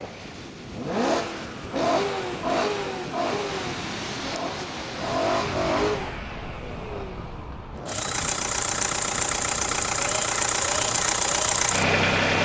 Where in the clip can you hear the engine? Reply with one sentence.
The engine can be heard from 0.0 to 12.4 s.